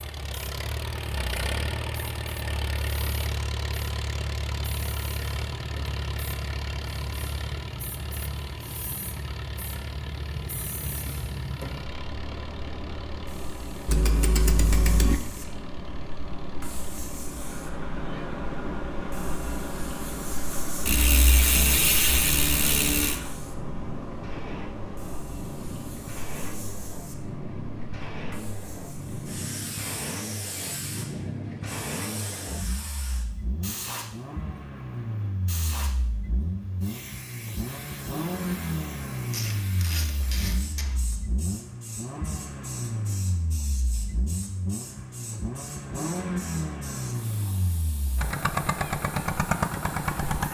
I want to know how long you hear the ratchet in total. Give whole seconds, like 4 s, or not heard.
5 s.